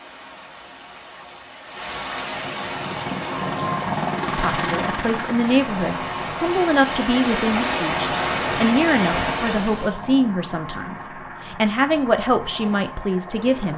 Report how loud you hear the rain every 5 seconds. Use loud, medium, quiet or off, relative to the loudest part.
medium, loud, off.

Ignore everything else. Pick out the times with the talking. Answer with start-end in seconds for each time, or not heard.
4.3-13.7.